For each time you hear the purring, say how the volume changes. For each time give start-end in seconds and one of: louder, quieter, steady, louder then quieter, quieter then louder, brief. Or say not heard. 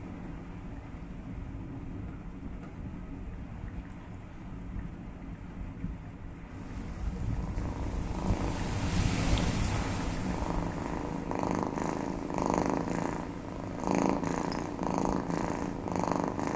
7.2-16.5 louder.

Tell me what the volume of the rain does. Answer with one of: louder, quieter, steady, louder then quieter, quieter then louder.
louder then quieter.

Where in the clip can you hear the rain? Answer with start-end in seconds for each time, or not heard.
0.0-16.5.